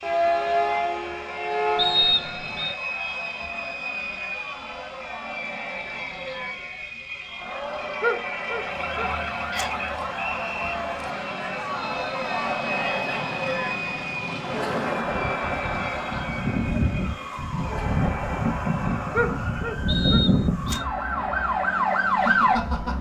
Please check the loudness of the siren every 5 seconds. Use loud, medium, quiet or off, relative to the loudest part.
loud, quiet, quiet, medium, loud.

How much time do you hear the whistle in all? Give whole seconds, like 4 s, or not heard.
3 s.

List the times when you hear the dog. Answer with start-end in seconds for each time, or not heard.
8.0-9.7, 19.1-20.9.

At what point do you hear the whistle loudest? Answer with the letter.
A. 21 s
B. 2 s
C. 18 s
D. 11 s
B.